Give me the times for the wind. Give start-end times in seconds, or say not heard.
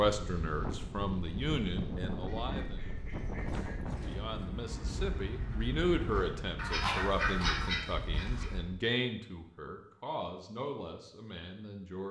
0.0-8.8.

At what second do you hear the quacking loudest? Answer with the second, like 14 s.
7 s.